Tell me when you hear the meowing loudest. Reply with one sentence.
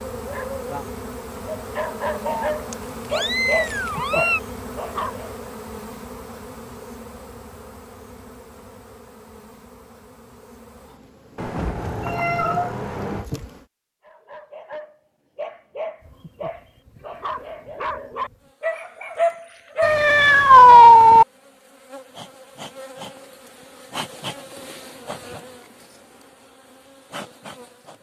The volume of the meowing peaks at 21 seconds.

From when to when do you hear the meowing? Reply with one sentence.
You can hear the meowing from 2.2 to 4.4 s, from 11.3 to 13.2 s and from 19.8 to 21.2 s.